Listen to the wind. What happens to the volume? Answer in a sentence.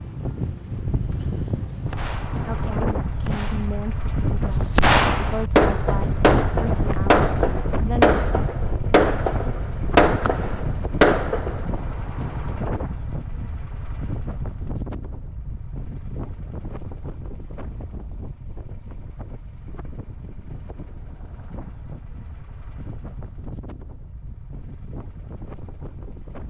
The volume of the wind goes down.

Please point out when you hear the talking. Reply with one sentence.
You can hear the talking from 2.5 to 8.2 s.